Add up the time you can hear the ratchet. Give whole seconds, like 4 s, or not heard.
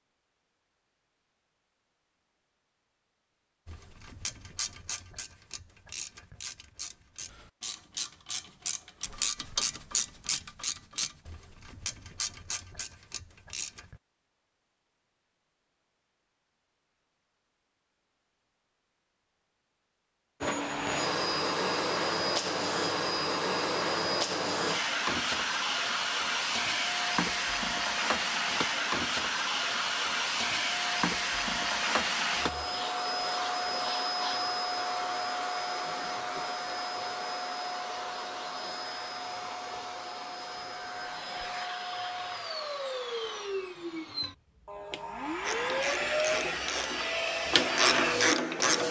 14 s.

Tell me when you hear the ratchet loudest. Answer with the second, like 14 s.
48 s.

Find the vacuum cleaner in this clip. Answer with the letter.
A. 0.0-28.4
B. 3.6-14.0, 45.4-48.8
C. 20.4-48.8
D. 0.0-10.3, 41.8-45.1
C.